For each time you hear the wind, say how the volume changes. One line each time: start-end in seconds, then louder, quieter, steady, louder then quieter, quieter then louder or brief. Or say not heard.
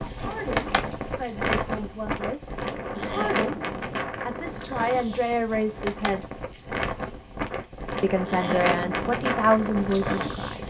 0.0-10.6 quieter then louder.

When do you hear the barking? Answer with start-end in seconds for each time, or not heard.
not heard.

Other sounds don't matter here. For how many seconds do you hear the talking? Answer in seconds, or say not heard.
9 s.